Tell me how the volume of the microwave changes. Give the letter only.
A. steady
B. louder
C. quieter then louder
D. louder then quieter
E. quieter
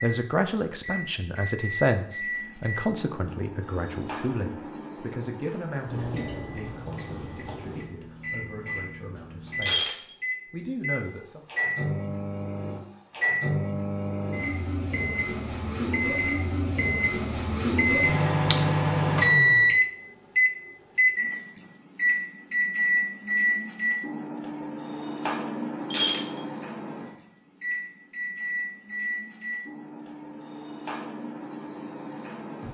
D.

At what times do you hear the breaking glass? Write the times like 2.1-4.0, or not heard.
9.6-10.2, 25.9-26.4.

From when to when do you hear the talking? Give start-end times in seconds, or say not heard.
0.0-11.4.